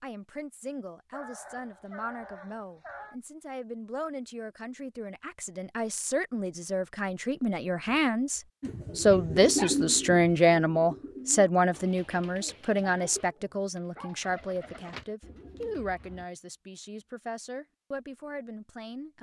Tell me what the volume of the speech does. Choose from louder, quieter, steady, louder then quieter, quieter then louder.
louder then quieter.